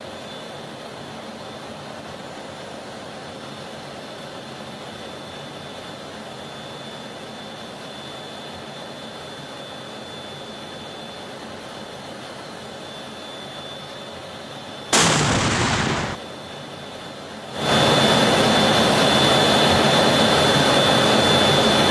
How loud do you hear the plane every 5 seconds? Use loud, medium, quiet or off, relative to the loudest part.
quiet, quiet, quiet, loud, loud.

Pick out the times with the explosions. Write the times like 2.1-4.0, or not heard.
14.9-16.1.